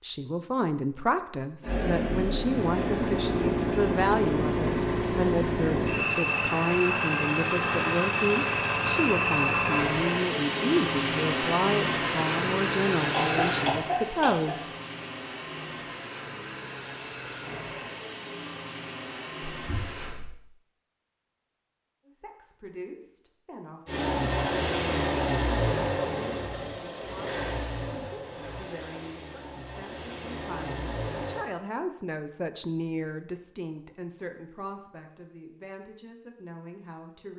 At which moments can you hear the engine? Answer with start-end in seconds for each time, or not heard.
1.6-20.1, 23.9-31.4.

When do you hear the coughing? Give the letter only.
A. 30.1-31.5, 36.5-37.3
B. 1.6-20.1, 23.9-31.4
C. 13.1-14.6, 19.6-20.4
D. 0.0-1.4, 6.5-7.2
C.